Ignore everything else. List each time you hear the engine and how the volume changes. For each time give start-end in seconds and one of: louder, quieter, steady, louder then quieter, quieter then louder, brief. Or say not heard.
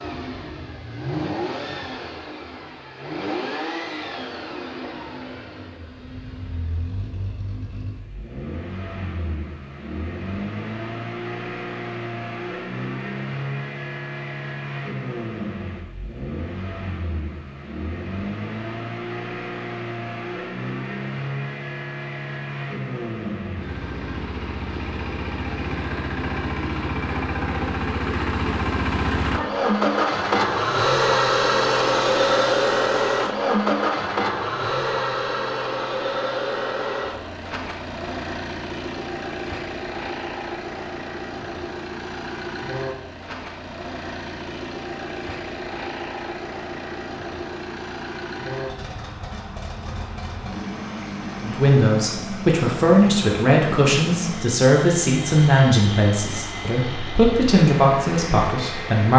0.0-59.1 louder then quieter.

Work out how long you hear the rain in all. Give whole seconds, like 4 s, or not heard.
not heard.